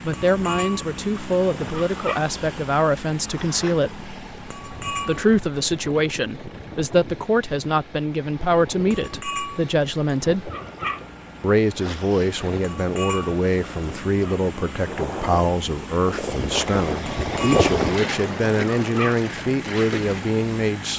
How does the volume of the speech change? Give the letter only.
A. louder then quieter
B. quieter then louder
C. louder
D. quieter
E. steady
E.